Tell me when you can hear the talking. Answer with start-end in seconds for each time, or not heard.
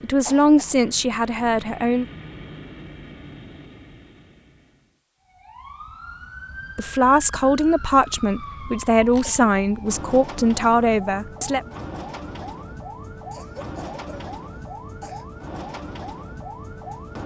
0.0-2.0, 6.8-11.6.